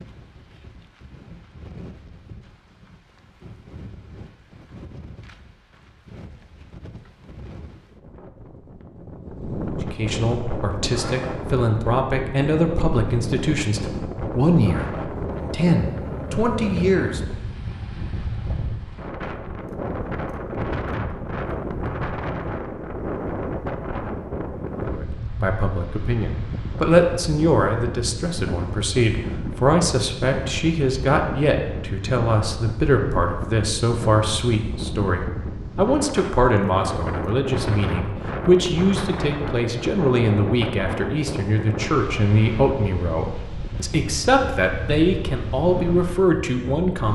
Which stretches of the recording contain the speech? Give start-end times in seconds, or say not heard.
9.8-17.2, 24.9-47.0.